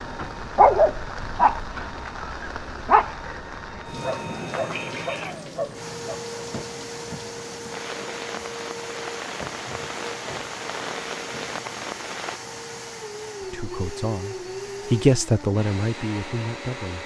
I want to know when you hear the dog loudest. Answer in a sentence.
The loudest moment of the dog is at 1 second.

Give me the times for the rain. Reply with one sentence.
The rain can be heard from 0.0 to 12.4 s.